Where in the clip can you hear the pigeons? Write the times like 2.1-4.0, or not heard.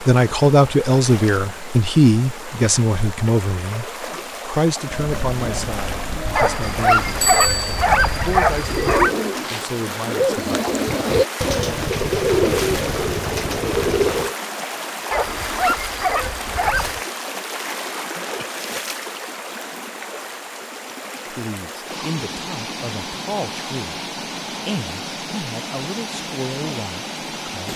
4.8-14.3.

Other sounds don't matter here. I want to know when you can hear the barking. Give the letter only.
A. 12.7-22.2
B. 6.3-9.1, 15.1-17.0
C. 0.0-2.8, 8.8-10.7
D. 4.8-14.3
B.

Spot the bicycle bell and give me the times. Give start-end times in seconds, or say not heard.
7.2-7.8.